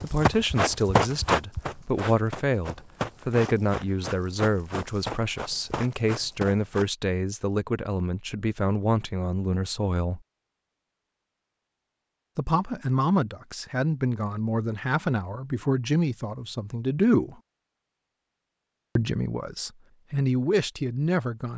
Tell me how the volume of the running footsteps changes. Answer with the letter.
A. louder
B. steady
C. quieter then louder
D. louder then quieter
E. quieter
E.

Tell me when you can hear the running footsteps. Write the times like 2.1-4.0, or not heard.
0.0-6.9.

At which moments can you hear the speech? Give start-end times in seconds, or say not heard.
0.0-10.2, 12.3-17.4, 18.9-21.5.